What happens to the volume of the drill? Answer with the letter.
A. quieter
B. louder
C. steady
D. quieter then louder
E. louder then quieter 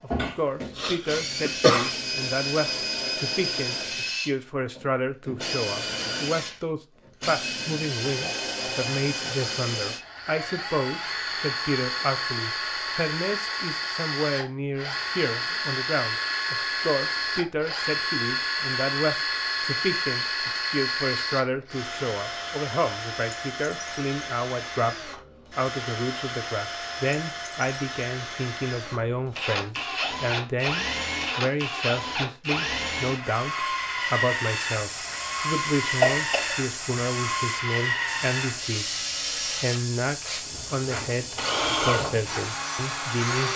C.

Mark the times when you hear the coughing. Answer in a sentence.
You can hear the coughing from 0.1 to 1.9 s and from 36.0 to 36.5 s.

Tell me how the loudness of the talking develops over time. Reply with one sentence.
The volume of the talking stays about the same.